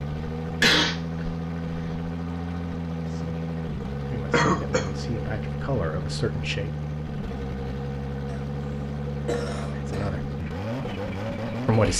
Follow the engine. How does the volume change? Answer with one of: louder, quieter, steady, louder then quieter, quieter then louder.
steady.